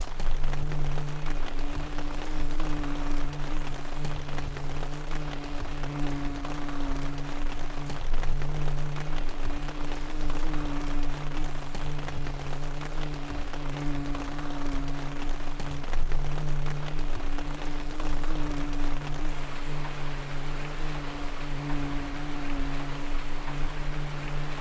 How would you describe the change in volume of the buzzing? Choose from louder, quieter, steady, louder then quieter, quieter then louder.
steady.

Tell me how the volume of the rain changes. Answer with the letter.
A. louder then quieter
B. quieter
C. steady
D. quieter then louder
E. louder
C.